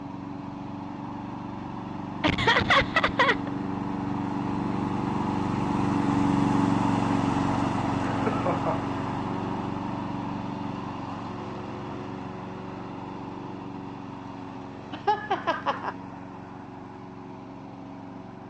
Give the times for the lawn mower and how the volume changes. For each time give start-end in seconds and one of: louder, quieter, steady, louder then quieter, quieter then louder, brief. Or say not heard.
0.0-18.4 louder then quieter.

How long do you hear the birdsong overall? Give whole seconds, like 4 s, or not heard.
not heard.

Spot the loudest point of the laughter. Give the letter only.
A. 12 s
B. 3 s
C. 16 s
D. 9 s
B.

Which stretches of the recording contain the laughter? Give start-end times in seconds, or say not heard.
2.2-3.5, 8.1-8.8, 14.9-15.9.